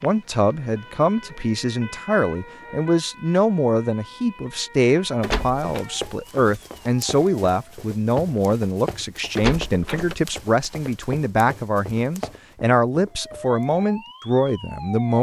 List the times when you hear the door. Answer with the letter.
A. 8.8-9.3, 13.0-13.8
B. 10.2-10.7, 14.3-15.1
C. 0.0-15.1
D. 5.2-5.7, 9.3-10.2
D.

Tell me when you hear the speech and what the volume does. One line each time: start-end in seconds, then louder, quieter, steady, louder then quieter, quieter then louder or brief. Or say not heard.
0.0-15.1 steady.